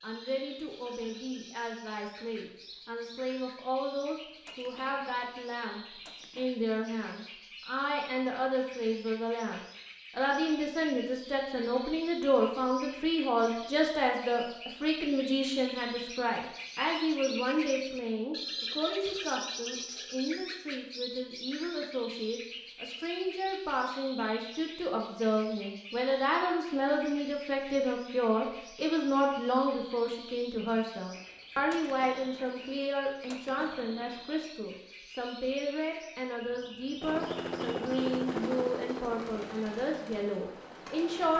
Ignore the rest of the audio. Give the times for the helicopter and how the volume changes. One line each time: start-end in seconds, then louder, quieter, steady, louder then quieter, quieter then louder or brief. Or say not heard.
37.0-41.3 quieter.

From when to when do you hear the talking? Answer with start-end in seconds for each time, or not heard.
0.0-41.3.